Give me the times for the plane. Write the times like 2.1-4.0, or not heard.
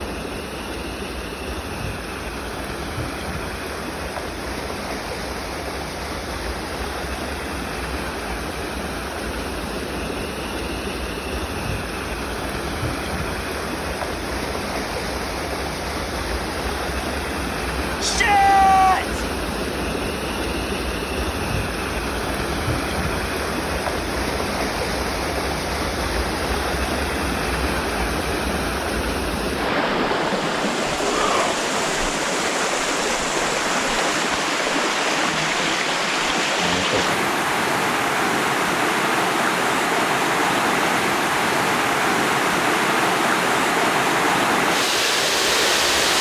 not heard.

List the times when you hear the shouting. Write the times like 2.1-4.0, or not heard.
18.0-19.2, 31.1-31.6.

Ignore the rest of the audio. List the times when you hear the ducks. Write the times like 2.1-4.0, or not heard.
not heard.